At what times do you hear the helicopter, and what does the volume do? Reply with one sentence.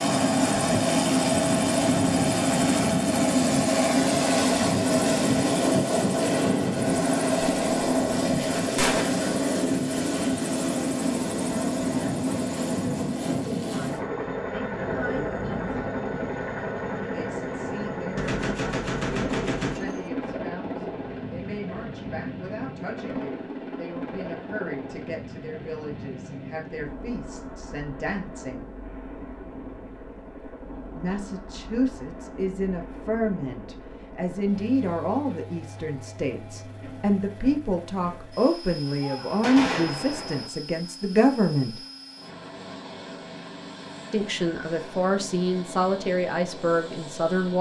The helicopter can be heard from 0.0 to 47.5 s, getting quieter.